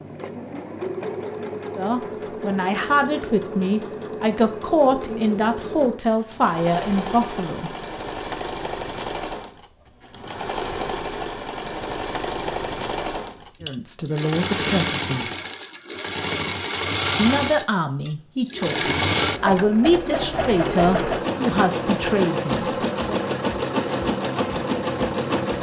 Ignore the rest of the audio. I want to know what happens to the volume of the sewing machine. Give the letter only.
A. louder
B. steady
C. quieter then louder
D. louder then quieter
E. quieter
A.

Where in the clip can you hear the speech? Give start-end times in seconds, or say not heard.
1.8-7.7, 13.6-15.2, 17.1-23.1.